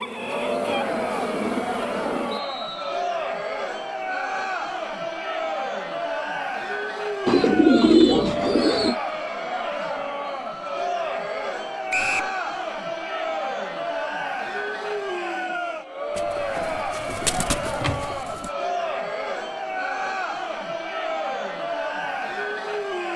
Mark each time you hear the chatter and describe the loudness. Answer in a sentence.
The chatter can be heard from 0.1 to 23.1 s, at a steady volume.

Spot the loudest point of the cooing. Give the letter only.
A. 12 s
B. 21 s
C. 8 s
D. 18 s
C.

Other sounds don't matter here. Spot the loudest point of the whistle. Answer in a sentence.
The volume of the whistle peaks at 12 seconds.